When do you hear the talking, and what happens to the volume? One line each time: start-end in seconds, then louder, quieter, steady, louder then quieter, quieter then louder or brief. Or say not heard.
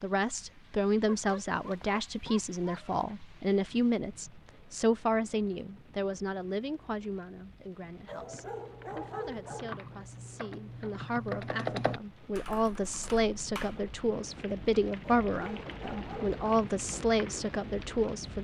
0.0-18.3 quieter then louder.